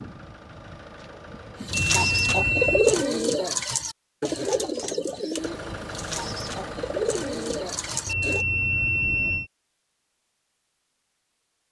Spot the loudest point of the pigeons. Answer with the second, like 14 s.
3 s.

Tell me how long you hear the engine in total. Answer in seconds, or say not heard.
5 s.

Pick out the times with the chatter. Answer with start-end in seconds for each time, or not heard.
not heard.